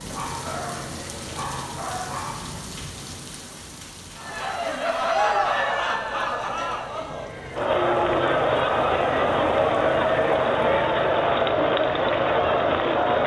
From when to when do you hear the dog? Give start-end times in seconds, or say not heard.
0.1-2.5.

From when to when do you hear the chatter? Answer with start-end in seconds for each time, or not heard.
4.2-13.2.